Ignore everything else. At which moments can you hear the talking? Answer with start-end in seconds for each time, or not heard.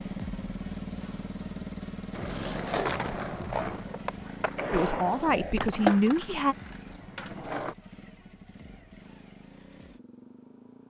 4.7-6.5.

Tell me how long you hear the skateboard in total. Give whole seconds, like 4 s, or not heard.
6 s.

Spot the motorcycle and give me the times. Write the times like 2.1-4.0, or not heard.
0.0-10.8.